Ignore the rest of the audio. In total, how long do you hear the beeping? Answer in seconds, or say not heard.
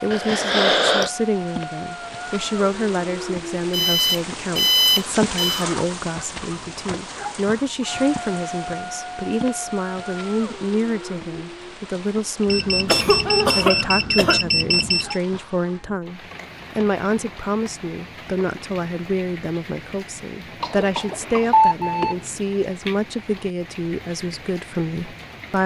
5 s.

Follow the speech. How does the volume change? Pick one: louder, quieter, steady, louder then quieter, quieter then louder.
steady.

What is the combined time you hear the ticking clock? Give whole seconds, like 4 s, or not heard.
not heard.